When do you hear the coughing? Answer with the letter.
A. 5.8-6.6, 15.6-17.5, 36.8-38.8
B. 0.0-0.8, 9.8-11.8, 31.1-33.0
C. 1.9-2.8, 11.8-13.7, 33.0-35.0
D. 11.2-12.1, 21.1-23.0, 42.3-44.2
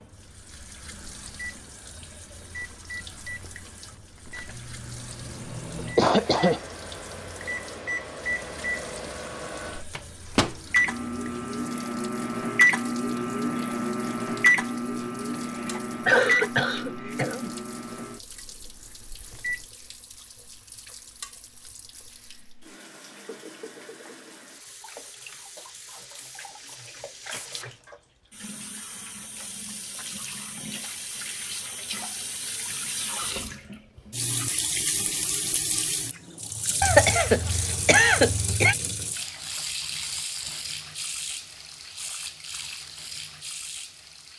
A.